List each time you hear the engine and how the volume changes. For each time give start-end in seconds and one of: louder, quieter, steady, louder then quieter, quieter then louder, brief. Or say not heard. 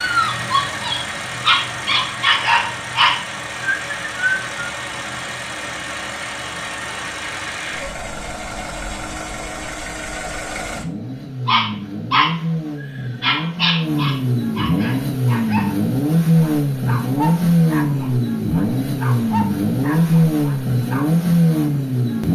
0.0-22.2 louder.